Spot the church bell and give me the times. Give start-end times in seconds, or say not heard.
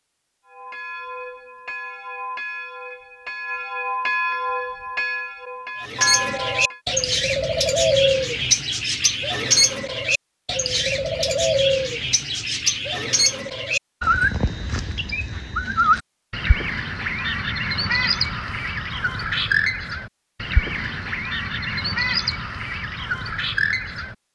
0.5-6.8.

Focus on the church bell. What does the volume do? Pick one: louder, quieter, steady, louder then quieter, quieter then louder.
louder.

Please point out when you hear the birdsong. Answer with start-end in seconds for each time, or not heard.
5.8-24.1.